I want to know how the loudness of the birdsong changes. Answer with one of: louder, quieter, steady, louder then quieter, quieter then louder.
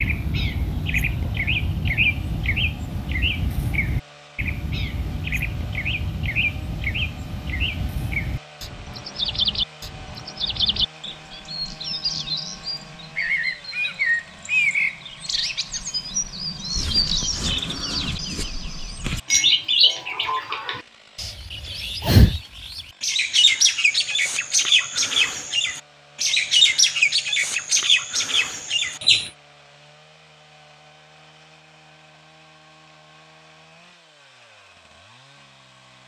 louder.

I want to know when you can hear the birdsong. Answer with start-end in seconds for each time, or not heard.
0.0-29.3.